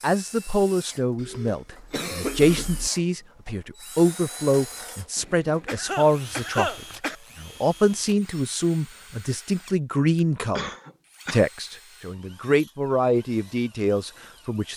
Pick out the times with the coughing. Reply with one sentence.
The coughing can be heard from 1.1 to 2.9 s, from 5.2 to 7.2 s and from 10.6 to 11.4 s.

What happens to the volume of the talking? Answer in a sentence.
The loudness of the talking stays about the same.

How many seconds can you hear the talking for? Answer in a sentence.
The talking can be heard for 14 seconds in total.